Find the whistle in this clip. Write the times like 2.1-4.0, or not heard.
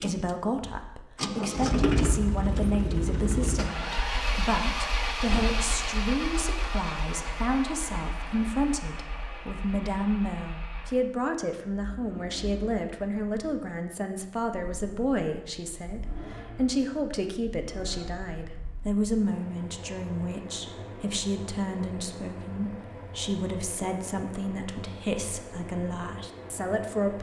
not heard.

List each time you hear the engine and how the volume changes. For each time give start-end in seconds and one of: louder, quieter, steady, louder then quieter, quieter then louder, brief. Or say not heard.
0.0-27.1 quieter then louder.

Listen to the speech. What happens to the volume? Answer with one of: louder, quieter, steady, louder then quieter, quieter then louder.
steady.